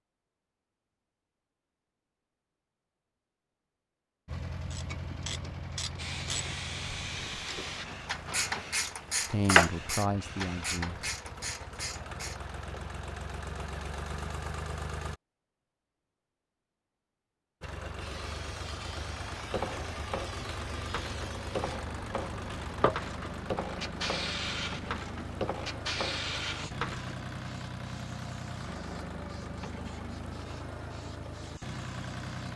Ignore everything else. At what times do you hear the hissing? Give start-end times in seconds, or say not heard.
6.0-10.8, 18.0-32.5.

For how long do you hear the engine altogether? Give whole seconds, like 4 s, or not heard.
26 s.